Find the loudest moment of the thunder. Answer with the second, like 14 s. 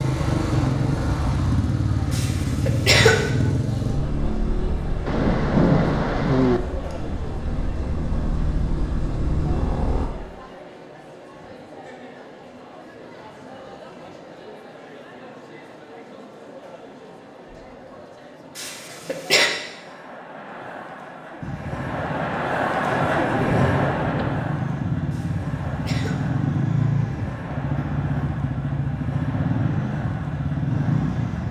6 s.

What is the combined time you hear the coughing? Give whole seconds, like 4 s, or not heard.
3 s.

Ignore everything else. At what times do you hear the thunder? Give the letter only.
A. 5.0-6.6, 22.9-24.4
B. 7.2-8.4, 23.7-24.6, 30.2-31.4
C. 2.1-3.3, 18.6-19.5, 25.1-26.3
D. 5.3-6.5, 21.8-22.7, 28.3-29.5
A.